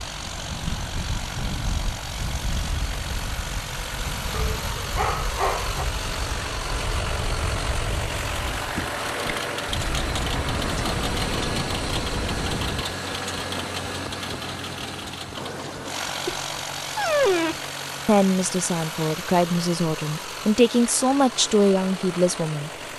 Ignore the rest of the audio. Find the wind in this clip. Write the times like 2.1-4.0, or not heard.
0.0-12.8.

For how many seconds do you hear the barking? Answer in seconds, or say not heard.
3 s.